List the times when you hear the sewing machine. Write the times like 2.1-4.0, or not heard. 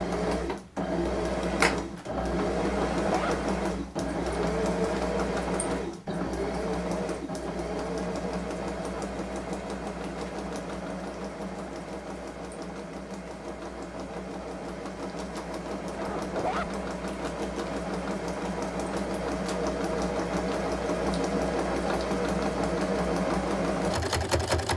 0.0-24.7.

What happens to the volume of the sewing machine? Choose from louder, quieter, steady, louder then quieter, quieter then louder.
quieter then louder.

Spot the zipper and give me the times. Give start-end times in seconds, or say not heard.
2.6-3.4, 15.9-16.7.